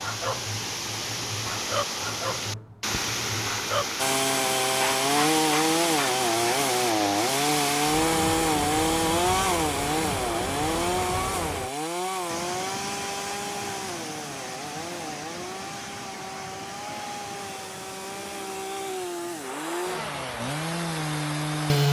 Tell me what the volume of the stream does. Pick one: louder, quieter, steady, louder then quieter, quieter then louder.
quieter.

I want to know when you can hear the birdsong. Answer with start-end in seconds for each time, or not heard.
not heard.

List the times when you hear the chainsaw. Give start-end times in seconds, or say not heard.
4.0-21.8.